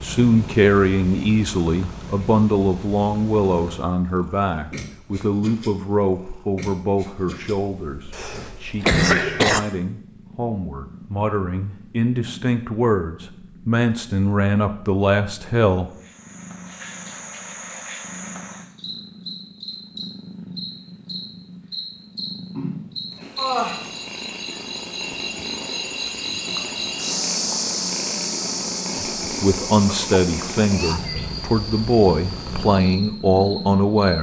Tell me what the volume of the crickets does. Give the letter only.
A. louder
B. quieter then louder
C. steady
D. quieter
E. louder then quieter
E.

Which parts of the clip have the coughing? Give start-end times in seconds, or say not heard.
8.1-9.6, 29.9-31.2.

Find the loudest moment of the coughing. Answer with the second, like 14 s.
9 s.